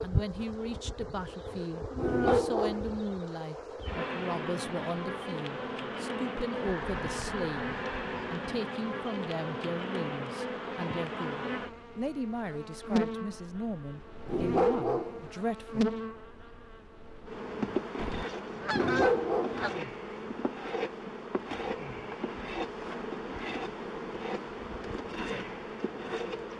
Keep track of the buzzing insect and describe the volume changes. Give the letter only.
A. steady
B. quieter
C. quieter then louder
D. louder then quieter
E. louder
A.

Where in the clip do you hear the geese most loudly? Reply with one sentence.
The volume of the geese peaks at 19 seconds.